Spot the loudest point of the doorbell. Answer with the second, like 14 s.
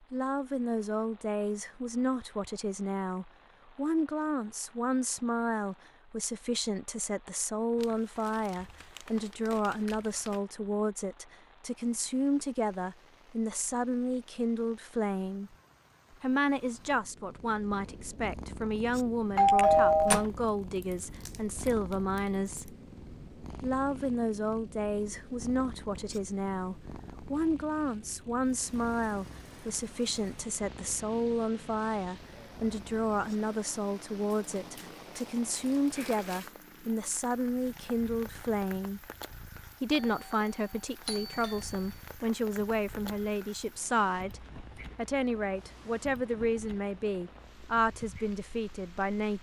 20 s.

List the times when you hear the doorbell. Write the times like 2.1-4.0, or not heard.
19.4-20.2, 40.0-42.0.